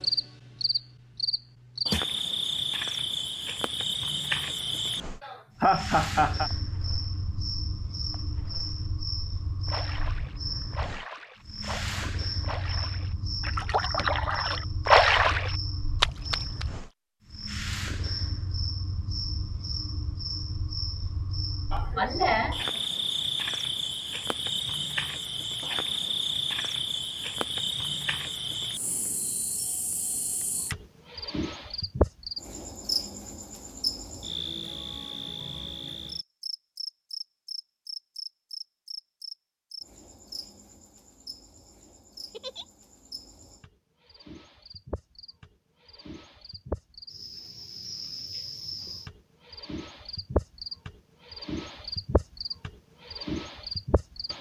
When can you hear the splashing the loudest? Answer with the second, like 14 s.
15 s.